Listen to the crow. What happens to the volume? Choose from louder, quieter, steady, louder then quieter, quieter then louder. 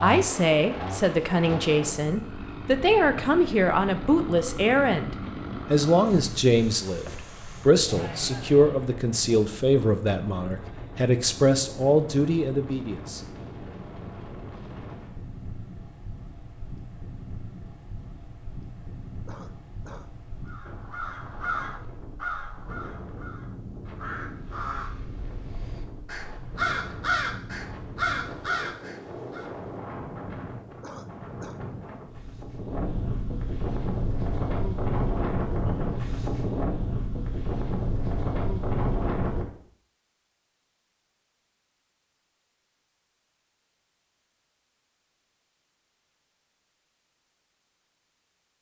quieter then louder.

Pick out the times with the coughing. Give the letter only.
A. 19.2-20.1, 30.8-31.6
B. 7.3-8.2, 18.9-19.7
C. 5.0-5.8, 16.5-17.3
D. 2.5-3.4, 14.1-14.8
A.